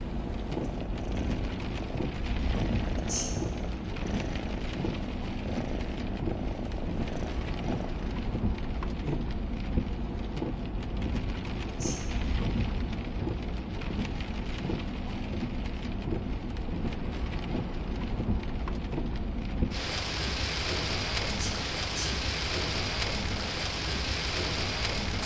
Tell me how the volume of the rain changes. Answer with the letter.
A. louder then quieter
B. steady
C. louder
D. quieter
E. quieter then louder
B.